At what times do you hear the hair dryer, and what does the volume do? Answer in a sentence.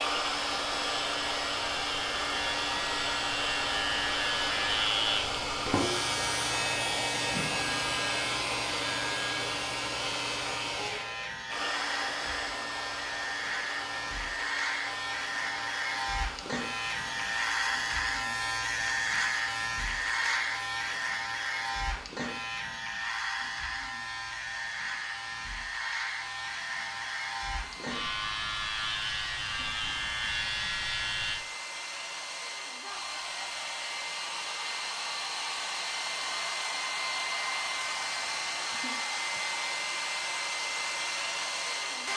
You can hear the hair dryer from 0.0 to 42.1 s, getting quieter then louder.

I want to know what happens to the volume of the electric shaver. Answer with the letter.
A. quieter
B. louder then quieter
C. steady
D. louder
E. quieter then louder
C.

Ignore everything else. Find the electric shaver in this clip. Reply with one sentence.
You can hear the electric shaver from 0.0 to 31.4 s.